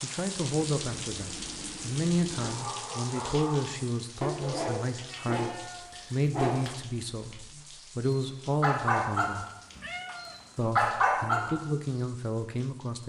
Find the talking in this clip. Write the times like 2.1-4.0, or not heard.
0.0-9.4, 10.6-13.0.